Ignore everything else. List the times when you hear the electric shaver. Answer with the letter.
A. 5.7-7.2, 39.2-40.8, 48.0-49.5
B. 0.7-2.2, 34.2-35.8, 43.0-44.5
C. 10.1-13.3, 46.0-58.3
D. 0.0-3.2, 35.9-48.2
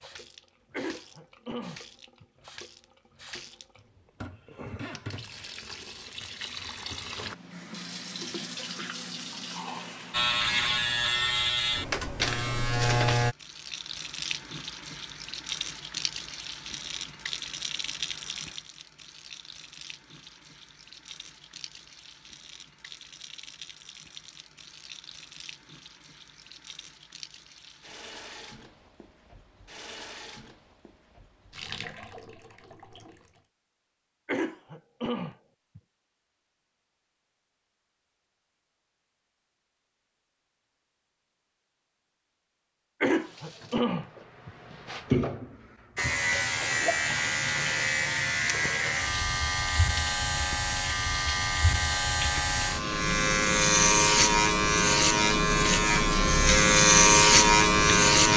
C.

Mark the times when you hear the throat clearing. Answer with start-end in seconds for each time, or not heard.
0.7-2.2, 34.2-35.8, 43.0-44.5.